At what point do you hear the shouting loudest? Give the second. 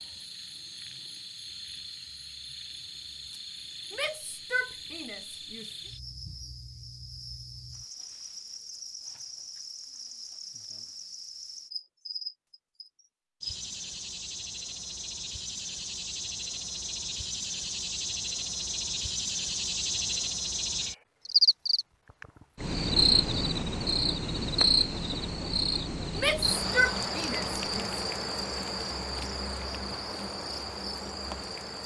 27 s.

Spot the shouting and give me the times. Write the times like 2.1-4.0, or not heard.
3.9-5.8, 26.1-28.0.